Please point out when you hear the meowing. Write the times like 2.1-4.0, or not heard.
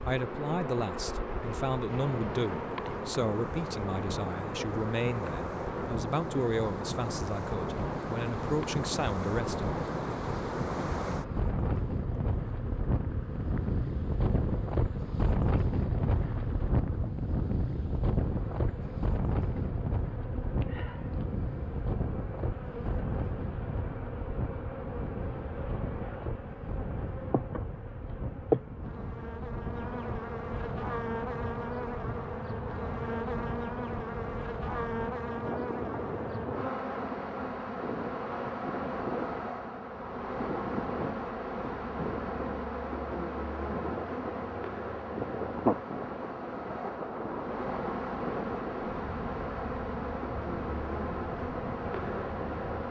not heard.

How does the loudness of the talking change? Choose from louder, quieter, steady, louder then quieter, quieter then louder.
steady.